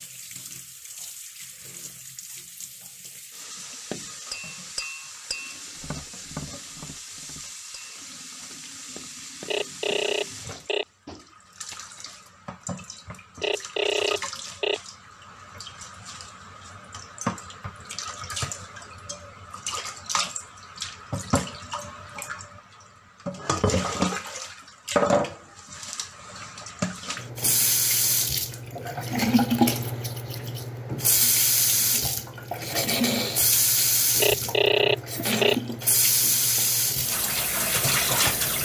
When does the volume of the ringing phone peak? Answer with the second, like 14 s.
35 s.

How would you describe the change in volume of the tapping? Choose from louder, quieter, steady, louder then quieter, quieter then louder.
quieter.